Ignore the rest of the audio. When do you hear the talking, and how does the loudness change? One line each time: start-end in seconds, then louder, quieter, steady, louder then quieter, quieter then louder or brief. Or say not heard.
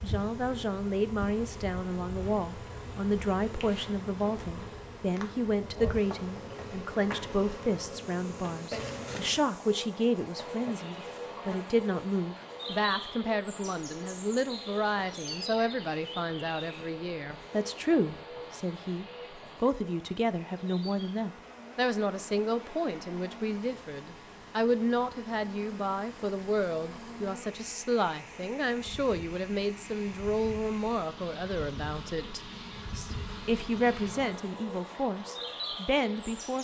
0.0-36.5 steady.